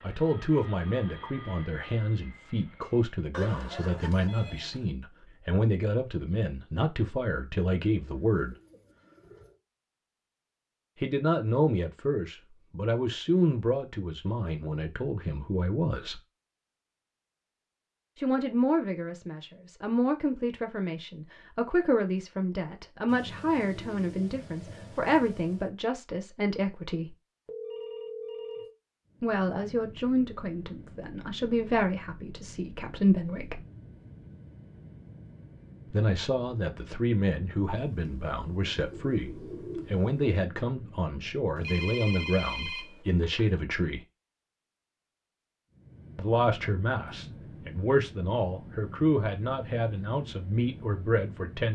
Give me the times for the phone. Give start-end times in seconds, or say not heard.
3.3-4.8, 27.4-28.8, 41.5-43.5.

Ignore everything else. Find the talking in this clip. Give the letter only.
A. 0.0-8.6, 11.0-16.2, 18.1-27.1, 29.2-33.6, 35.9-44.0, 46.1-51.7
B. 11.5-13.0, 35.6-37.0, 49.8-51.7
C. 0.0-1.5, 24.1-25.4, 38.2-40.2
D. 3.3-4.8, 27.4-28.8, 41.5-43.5
A.